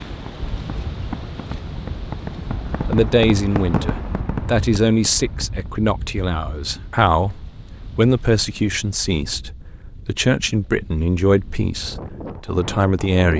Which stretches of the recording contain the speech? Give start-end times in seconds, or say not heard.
2.9-13.3.